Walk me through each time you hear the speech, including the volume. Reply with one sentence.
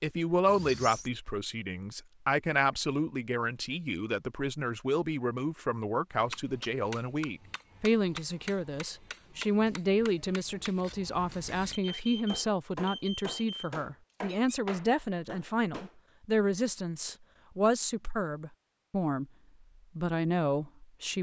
You can hear the speech from 0.0 to 19.2 s, at a steady volume; and briefly from 19.9 to 21.1 s.